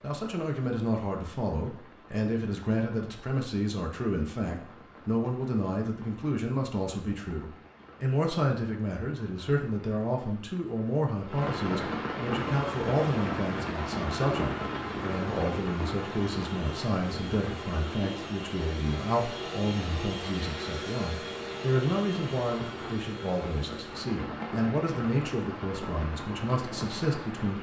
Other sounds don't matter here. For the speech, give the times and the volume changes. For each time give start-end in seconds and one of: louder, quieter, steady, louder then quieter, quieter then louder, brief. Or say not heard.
0.0-27.5 steady.